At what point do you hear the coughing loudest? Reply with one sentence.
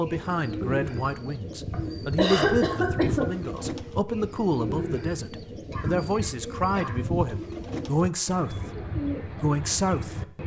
The volume of the coughing peaks at 2 seconds.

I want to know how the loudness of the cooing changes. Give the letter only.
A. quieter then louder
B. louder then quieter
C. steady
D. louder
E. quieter
C.